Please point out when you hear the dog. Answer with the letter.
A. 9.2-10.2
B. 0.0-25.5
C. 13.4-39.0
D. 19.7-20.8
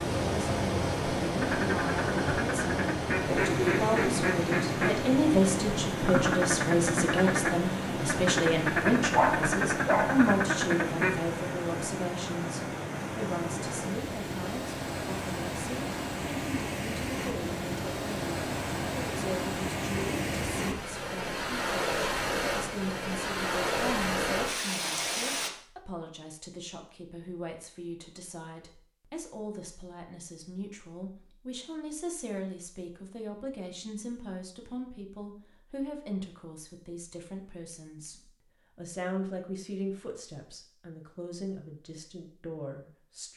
A.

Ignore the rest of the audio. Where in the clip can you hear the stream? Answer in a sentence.
The stream can be heard from 0.0 to 25.5 s.